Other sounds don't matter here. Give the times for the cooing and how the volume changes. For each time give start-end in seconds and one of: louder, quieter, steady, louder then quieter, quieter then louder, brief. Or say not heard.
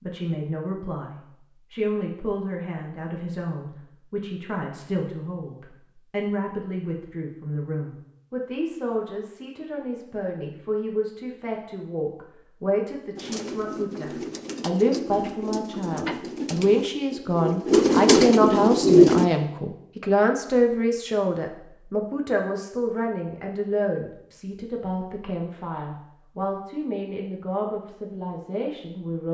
13.2-19.2 louder.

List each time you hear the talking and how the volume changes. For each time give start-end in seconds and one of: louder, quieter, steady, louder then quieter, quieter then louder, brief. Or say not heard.
0.0-29.2 louder then quieter.